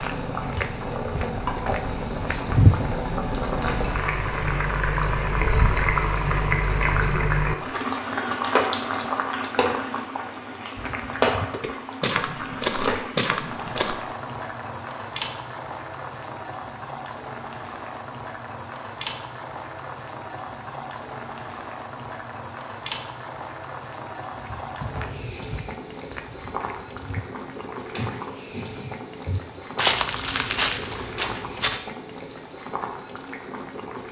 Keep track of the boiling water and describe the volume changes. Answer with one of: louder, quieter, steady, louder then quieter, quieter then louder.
quieter.